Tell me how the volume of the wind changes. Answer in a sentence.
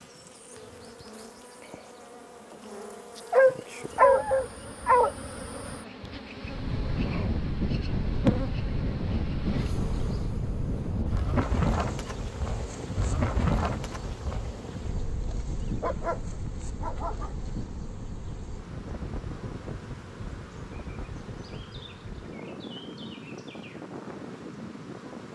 The loudness of the wind goes down.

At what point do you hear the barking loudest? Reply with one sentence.
The volume of the barking peaks at 4 seconds.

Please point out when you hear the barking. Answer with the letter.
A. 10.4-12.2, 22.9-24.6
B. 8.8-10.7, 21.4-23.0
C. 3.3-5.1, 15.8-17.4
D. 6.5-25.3
C.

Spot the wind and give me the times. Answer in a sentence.
The wind can be heard from 6.5 to 25.3 s.